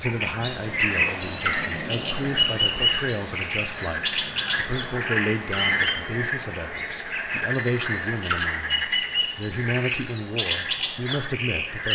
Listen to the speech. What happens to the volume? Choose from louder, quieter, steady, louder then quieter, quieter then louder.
steady.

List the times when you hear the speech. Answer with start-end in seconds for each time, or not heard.
0.0-11.9.